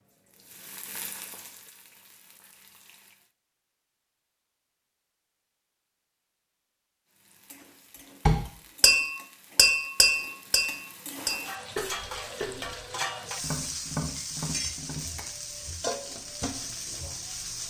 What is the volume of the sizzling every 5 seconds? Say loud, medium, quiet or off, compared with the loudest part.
quiet, quiet, loud, loud.